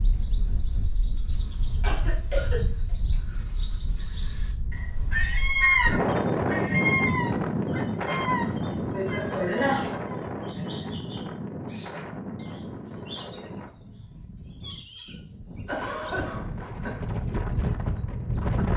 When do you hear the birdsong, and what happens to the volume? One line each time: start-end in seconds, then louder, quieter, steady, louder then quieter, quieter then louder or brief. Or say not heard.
0.0-18.7 louder then quieter.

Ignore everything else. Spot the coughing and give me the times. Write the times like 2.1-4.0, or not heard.
1.4-2.6, 8.9-9.9, 15.7-17.0.